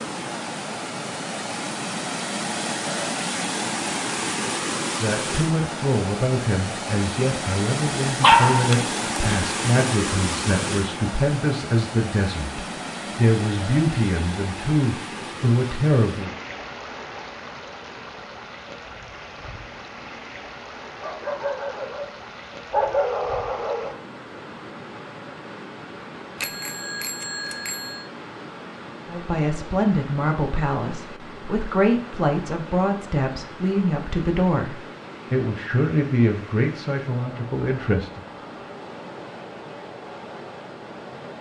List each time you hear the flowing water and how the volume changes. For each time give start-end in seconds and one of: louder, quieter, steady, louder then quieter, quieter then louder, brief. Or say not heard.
0.0-41.3 quieter.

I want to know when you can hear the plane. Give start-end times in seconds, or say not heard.
not heard.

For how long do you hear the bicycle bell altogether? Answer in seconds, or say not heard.
2 s.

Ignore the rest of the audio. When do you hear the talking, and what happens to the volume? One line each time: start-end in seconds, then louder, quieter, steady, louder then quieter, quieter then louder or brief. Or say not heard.
5.0-16.3 steady
29.1-38.2 steady.